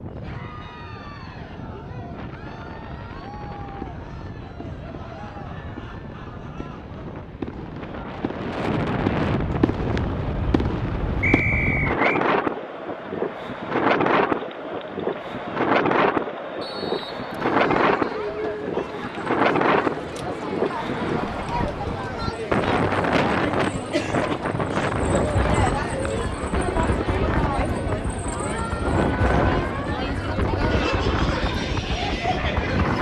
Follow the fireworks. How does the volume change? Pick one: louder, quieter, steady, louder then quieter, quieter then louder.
louder.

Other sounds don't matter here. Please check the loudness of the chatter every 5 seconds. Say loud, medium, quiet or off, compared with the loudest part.
quiet, quiet, medium, medium, loud, loud, loud.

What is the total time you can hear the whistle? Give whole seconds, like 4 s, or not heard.
2 s.